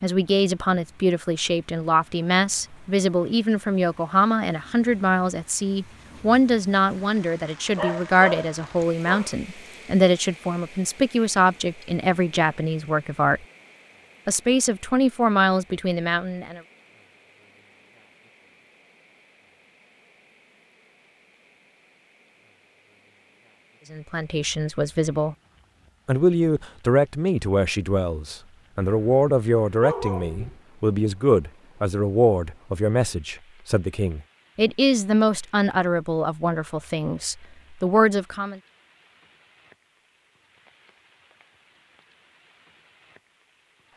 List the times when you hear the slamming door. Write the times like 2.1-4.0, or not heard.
not heard.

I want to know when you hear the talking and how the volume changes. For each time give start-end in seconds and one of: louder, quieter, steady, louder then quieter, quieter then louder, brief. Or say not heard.
0.0-13.4 steady
14.2-16.6 brief
23.9-25.4 brief
26.1-38.6 steady.